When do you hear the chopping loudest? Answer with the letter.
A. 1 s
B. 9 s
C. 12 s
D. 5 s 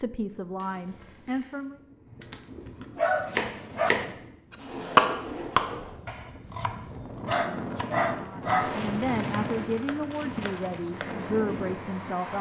D.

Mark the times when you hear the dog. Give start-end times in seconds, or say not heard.
2.2-3.9, 7.2-8.9.